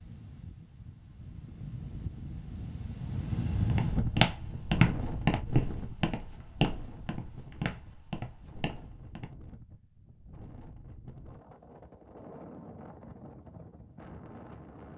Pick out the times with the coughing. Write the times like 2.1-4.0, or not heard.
not heard.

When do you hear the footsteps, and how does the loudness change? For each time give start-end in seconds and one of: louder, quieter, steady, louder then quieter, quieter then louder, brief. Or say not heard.
3.6-9.3 quieter.